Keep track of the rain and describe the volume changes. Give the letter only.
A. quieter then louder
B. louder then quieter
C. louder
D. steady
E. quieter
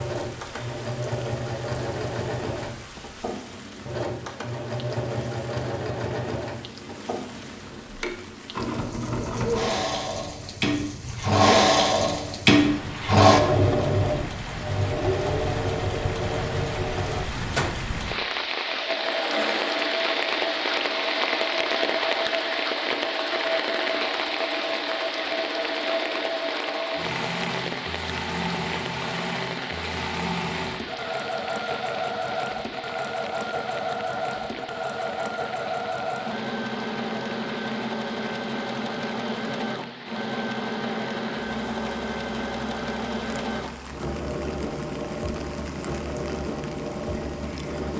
B.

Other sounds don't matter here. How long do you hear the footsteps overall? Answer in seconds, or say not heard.
not heard.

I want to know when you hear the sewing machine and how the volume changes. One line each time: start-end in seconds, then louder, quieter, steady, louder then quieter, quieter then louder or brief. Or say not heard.
0.0-47.9 louder then quieter.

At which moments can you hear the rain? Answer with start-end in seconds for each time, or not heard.
0.0-47.9.